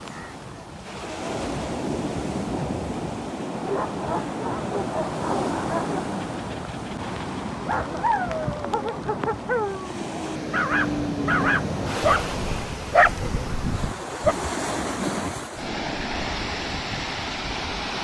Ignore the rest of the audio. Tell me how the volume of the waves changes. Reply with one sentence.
The volume of the waves stays about the same.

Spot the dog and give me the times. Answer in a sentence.
The dog can be heard from 3.5 to 14.3 s.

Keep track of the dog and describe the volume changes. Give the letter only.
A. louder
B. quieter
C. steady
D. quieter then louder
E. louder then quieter
A.